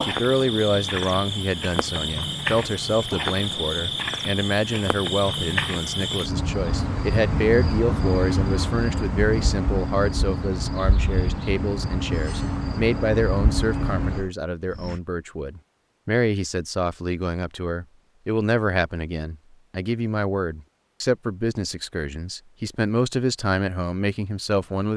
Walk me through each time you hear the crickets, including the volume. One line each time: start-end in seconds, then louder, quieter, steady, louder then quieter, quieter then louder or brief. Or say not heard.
0.0-15.0 steady.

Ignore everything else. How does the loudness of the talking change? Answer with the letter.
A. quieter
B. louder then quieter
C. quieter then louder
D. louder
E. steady
E.